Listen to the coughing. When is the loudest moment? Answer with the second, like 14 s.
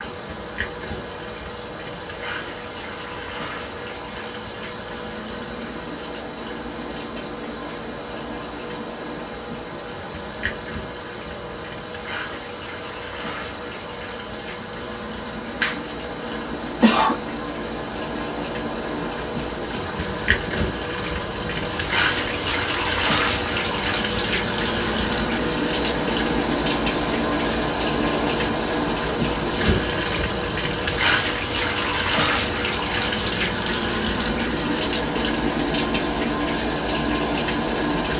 17 s.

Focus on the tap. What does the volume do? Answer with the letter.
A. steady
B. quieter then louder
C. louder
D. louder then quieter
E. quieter
C.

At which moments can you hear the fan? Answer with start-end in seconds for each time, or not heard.
0.0-38.1.